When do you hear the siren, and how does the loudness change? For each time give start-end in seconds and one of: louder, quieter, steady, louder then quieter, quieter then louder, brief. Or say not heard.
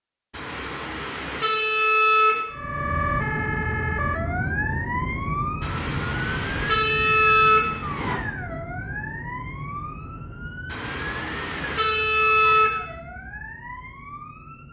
2.5-14.6 quieter.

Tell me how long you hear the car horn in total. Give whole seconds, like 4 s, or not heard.
7 s.